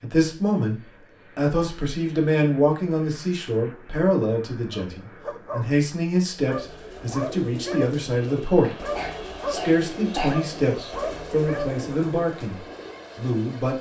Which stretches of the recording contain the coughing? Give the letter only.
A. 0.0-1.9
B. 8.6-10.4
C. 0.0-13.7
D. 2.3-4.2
B.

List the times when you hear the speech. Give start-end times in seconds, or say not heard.
0.0-13.7.